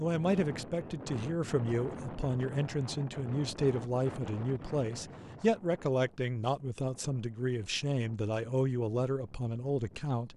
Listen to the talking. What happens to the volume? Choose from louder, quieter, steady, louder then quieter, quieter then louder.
steady.